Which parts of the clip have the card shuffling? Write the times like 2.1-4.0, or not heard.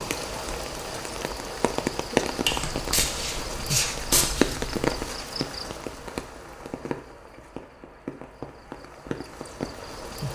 2.5-4.8.